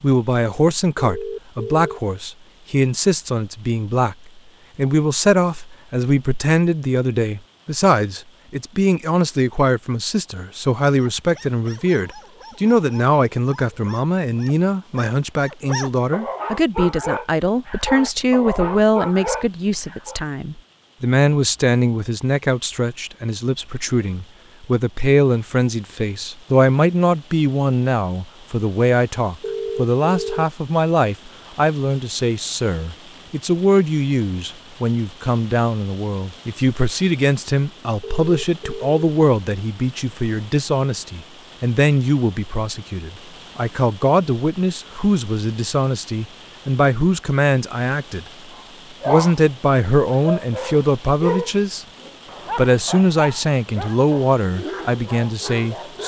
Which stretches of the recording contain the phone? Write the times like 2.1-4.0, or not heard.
0.9-2.0, 29.4-30.4, 38.0-38.9.